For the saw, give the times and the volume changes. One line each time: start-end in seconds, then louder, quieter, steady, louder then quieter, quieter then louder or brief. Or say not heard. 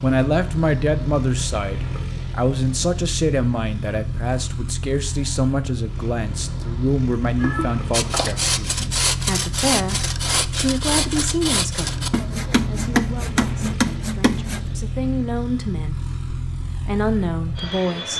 7.9-14.7 steady.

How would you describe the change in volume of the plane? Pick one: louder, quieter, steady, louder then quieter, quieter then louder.
steady.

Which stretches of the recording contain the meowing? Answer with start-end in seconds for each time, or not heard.
7.3-8.6.